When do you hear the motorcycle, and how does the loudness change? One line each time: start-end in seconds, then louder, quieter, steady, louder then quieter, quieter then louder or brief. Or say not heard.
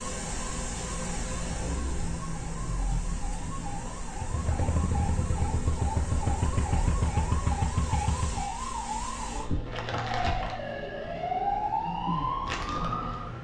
4.1-8.4 steady.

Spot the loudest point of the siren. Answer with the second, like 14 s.
12 s.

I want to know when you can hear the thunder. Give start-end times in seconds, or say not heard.
1.5-4.0.